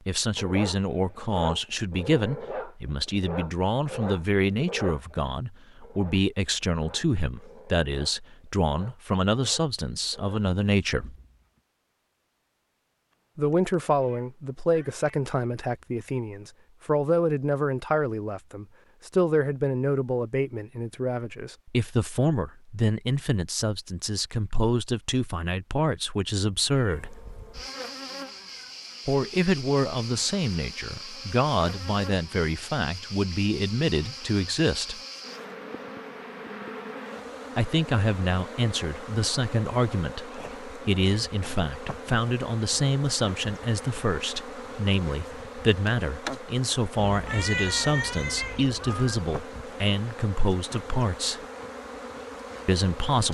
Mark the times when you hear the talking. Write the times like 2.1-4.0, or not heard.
0.1-11.2, 13.3-27.2, 29.1-35.0, 37.5-51.4, 52.6-53.2.